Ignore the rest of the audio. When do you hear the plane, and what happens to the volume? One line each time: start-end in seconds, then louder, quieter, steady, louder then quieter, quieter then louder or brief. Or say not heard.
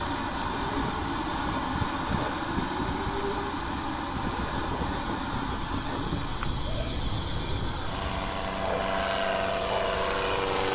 0.0-10.7 quieter then louder.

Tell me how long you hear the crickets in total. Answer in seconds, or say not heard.
11 s.